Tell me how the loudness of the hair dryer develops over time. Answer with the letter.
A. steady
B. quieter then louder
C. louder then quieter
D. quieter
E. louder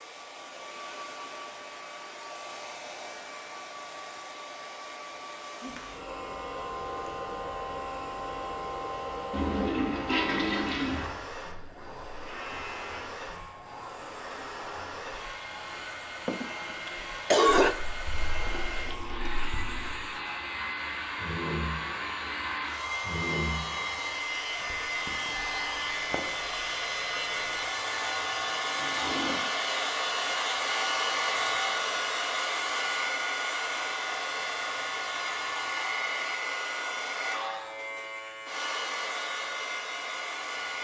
E.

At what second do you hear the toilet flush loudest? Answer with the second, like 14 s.
10 s.